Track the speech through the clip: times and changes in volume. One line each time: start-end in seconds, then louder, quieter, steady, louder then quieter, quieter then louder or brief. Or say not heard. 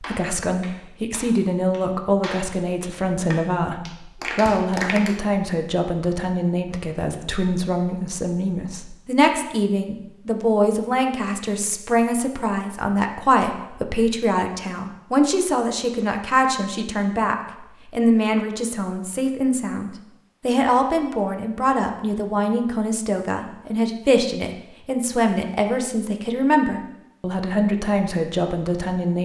0.0-29.1 steady.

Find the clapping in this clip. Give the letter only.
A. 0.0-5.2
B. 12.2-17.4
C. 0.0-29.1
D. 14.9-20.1
A.